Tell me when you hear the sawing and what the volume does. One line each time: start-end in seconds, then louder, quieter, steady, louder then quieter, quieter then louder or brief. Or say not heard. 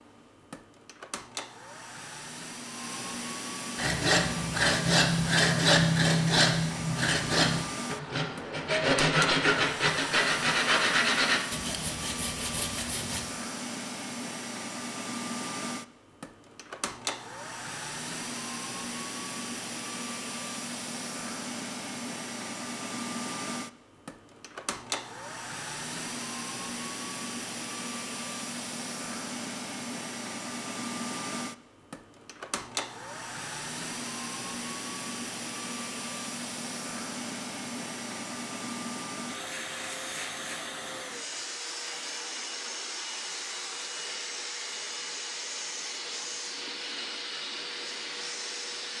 3.8-13.2 quieter.